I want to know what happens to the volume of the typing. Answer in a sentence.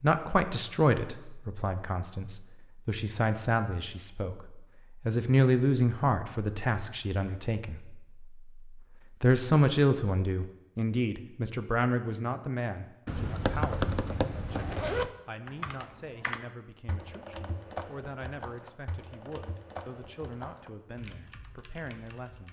The loudness of the typing goes down.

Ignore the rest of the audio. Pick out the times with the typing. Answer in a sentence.
You can hear the typing from 13.1 to 22.4 s.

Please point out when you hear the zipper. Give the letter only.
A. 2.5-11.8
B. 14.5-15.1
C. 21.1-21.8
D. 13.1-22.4
B.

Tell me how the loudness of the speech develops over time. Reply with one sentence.
The volume of the speech goes down.